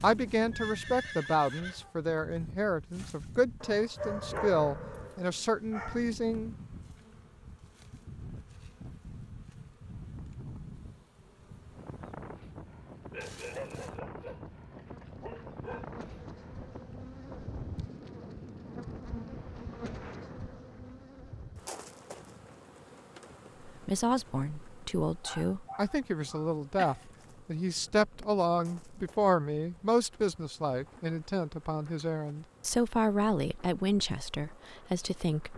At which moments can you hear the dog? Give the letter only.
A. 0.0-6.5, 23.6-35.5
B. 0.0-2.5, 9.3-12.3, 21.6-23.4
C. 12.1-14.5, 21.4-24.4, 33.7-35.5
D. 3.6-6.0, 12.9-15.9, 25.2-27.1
D.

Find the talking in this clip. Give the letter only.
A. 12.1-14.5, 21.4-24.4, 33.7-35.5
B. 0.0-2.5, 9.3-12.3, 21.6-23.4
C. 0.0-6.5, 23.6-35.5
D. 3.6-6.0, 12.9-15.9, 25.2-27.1
C.